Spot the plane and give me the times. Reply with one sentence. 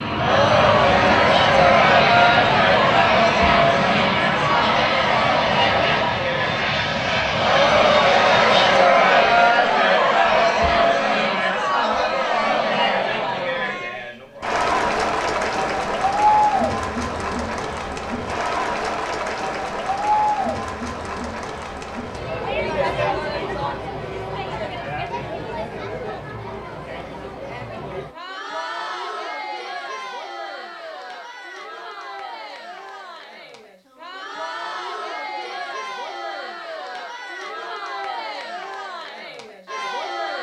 You can hear the plane from 0.0 to 8.9 s.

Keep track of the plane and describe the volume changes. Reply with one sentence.
The loudness of the plane stays about the same.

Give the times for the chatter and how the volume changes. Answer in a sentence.
You can hear the chatter from 0.0 to 40.3 s, getting quieter.